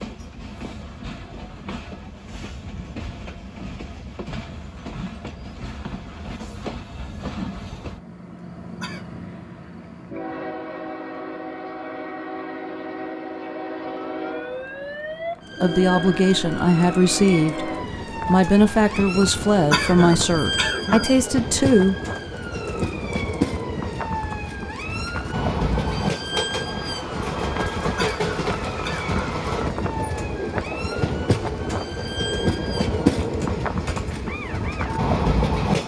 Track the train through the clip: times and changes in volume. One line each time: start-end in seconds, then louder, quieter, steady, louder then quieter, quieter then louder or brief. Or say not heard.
0.0-35.8 louder.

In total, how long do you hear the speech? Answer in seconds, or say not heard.
6 s.